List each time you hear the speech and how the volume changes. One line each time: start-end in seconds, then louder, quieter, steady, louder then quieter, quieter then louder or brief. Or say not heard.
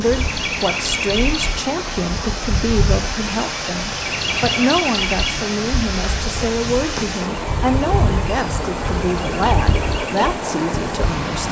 0.0-11.4 steady.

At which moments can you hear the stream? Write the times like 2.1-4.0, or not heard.
0.0-11.4.